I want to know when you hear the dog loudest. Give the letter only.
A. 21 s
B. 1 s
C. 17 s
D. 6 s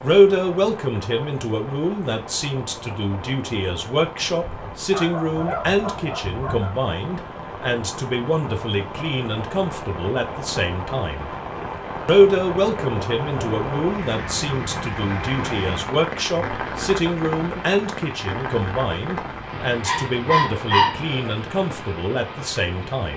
A.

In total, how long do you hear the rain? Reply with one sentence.
You can hear the rain for 23 seconds altogether.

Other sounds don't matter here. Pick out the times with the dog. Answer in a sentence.
You can hear the dog from 4.5 to 6.8 s and from 19.9 to 21.4 s.